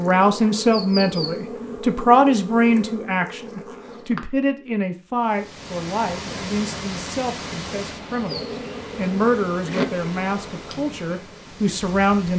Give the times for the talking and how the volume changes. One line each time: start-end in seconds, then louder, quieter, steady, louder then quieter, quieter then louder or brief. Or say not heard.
0.0-12.3 quieter.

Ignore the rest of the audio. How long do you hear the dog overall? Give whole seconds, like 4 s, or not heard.
not heard.